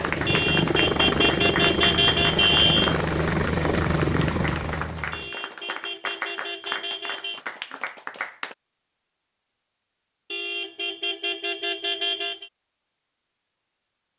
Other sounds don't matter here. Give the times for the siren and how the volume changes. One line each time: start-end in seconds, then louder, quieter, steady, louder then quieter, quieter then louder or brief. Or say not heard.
not heard.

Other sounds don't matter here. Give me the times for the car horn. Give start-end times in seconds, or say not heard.
0.2-3.0, 5.1-7.4, 10.3-12.5.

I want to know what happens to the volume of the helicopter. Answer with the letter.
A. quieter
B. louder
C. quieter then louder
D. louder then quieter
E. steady
E.